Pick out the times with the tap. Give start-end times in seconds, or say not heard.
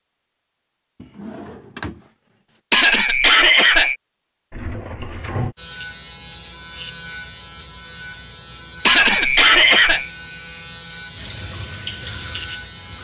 11.1-12.9.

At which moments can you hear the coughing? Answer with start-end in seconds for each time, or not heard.
2.7-4.0, 8.8-10.1.